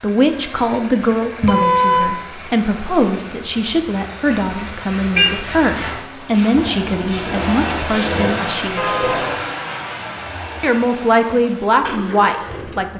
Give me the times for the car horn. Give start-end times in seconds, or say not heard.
1.4-2.1, 5.2-6.0, 8.8-9.3.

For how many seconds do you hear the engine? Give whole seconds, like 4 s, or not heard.
13 s.